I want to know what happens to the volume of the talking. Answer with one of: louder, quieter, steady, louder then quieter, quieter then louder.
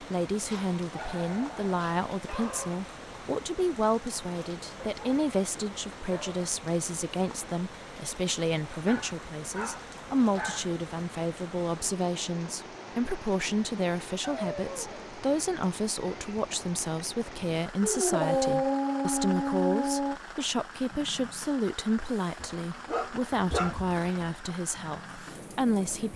steady.